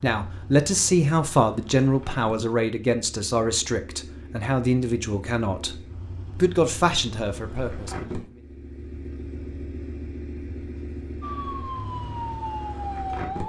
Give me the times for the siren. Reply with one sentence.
You can hear the siren from 11.2 to 13.4 s.